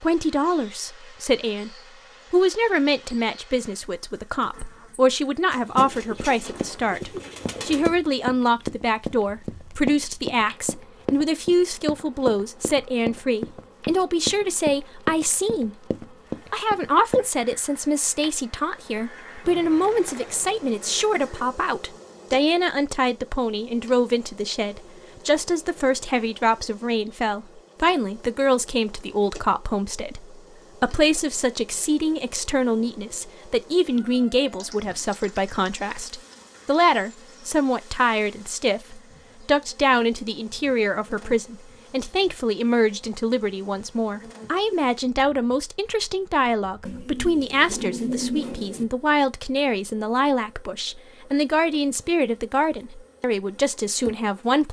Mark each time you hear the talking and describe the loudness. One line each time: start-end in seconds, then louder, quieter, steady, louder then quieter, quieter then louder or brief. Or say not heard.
0.0-54.6 steady.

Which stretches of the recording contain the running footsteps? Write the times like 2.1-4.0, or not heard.
6.2-17.6.